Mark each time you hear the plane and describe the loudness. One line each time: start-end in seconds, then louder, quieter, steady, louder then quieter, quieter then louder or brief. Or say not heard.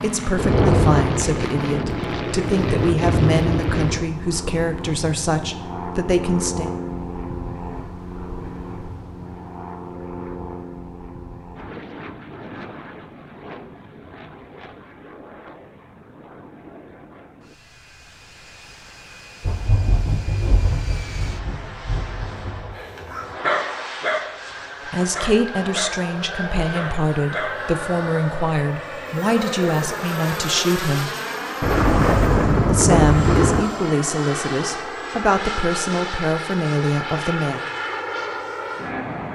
0.0-39.3 quieter then louder.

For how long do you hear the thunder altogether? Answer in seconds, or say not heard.
9 s.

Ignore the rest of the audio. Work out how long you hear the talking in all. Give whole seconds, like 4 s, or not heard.
18 s.